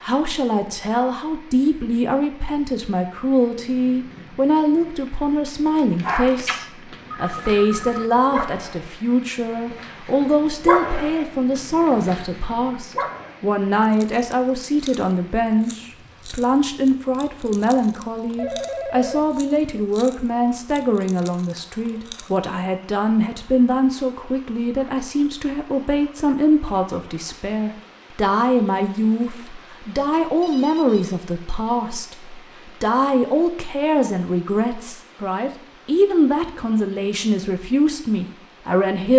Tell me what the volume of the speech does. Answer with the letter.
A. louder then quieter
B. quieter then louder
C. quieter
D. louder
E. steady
E.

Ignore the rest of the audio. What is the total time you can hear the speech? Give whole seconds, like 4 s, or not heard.
39 s.